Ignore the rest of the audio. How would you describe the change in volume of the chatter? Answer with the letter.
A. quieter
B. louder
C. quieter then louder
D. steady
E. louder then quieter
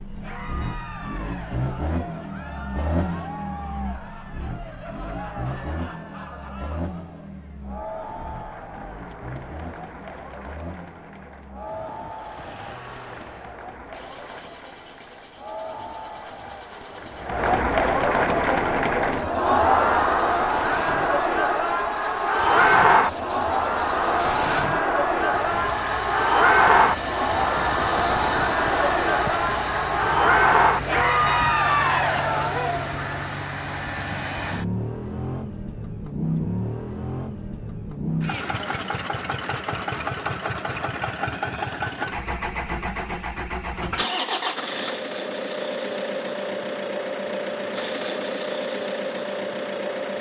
B.